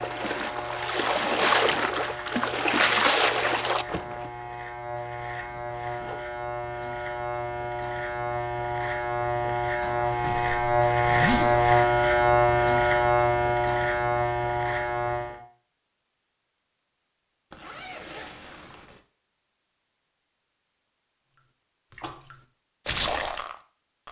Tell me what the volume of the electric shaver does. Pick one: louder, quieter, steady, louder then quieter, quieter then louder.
louder.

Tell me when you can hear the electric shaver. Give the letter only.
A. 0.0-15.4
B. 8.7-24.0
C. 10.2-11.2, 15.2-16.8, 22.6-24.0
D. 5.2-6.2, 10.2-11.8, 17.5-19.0
A.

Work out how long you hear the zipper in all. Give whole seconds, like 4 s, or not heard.
4 s.